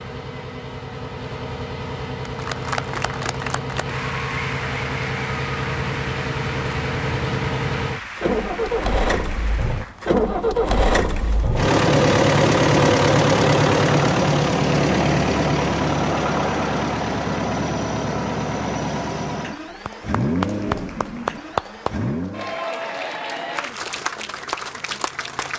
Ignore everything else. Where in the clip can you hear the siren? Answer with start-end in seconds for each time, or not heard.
not heard.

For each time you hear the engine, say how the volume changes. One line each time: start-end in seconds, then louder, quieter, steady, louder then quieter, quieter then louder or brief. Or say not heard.
0.0-22.6 louder then quieter.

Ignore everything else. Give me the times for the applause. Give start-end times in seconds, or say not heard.
2.2-10.2, 19.6-25.5.